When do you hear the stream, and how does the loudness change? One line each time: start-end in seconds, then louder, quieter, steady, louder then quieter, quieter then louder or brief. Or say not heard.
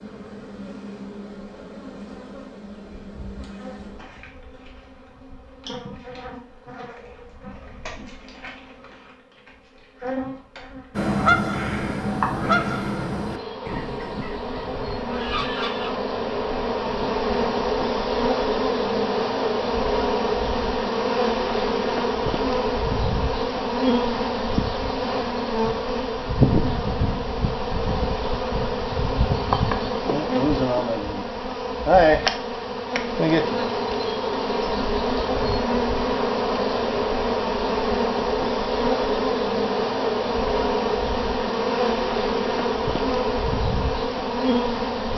not heard.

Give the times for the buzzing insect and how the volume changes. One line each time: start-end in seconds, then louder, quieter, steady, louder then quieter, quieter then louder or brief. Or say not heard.
0.0-45.1 louder.